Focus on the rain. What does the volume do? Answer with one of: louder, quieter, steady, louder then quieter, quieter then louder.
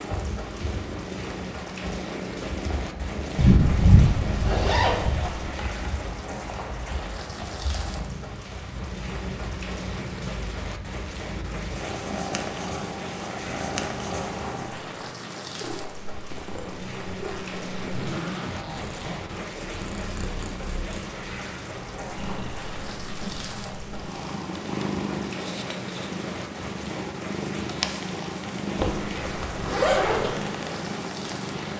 steady.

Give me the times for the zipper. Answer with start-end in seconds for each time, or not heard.
3.4-5.3, 17.2-19.6, 28.8-30.3.